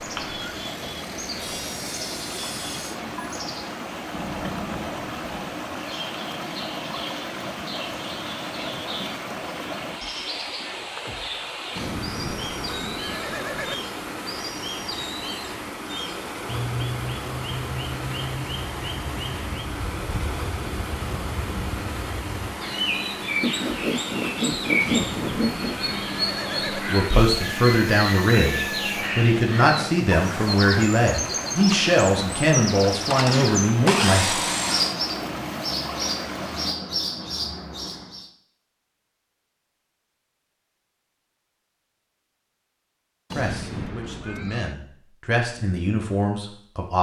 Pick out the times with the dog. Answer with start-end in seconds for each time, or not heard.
not heard.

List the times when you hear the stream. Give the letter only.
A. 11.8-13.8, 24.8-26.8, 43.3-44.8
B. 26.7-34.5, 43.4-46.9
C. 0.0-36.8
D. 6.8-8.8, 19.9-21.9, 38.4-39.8
C.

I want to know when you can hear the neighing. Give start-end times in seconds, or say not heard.
11.8-13.8, 24.8-26.8, 43.3-44.8.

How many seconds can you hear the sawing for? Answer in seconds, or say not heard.
7 s.